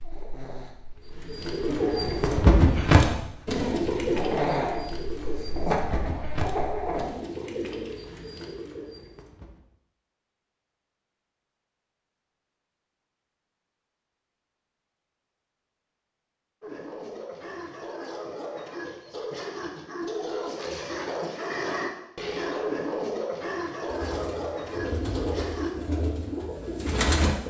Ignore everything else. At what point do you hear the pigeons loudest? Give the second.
3 s.